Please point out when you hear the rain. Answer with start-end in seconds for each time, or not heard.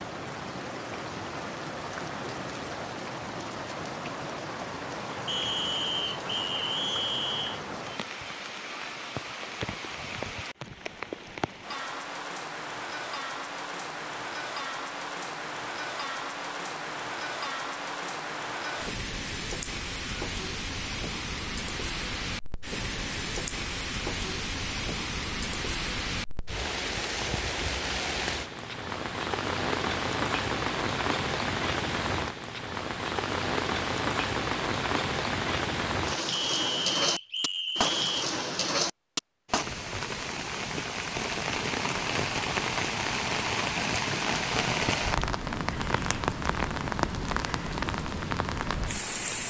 0.0-49.4.